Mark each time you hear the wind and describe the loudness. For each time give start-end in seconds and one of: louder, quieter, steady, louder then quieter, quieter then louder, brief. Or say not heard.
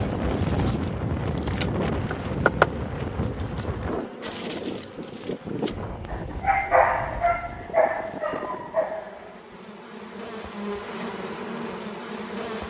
0.0-9.1 quieter.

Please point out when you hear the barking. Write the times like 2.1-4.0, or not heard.
6.1-9.4.